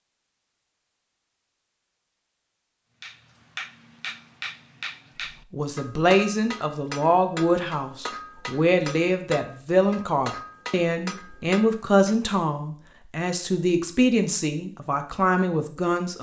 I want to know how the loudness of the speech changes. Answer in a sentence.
The loudness of the speech stays about the same.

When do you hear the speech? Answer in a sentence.
You can hear the speech from 5.5 to 16.1 s.